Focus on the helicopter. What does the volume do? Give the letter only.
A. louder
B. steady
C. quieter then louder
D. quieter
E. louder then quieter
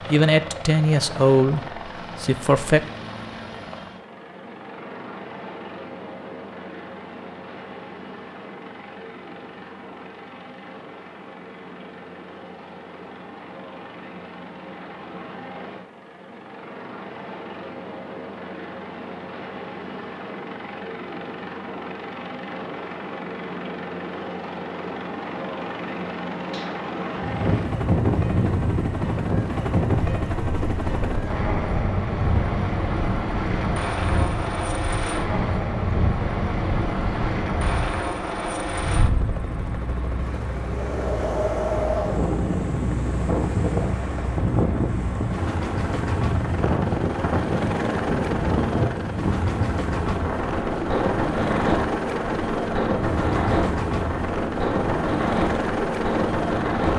A.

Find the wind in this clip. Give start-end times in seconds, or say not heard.
27.1-56.9.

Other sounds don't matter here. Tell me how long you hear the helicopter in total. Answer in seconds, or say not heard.
57 s.